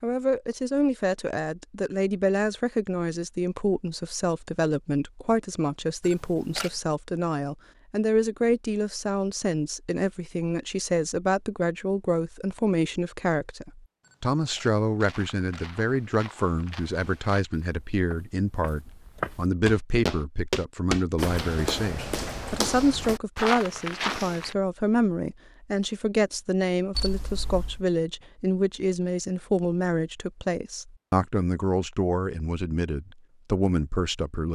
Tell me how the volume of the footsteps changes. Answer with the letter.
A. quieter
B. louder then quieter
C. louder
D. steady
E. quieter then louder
C.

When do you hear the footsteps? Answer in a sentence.
The footsteps can be heard from 15.0 to 24.6 s.